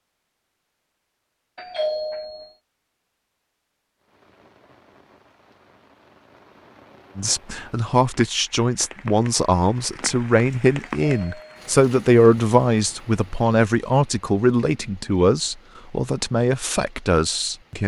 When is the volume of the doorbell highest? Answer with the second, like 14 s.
2 s.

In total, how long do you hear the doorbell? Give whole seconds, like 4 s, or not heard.
2 s.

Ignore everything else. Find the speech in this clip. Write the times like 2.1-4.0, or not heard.
7.2-17.8.